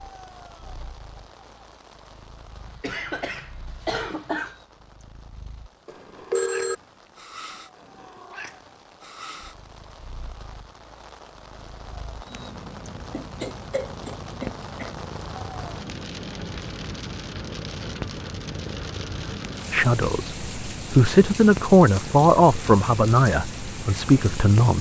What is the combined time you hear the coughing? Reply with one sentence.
The coughing can be heard for 4 seconds in total.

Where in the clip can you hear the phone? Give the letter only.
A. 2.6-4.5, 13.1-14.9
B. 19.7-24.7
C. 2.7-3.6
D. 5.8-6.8
D.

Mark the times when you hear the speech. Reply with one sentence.
You can hear the speech from 19.7 to 24.7 s.